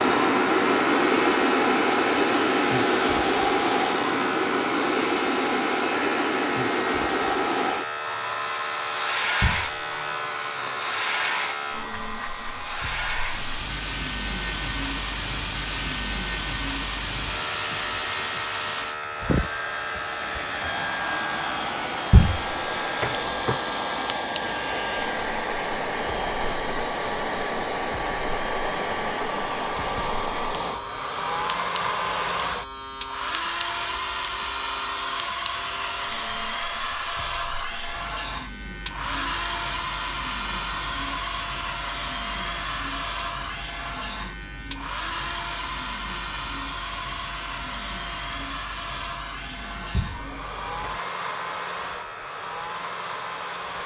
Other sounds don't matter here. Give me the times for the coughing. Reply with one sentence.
The coughing can't be heard in this clip.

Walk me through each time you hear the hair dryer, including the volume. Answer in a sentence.
The hair dryer can be heard from 0.0 to 53.8 s, getting quieter.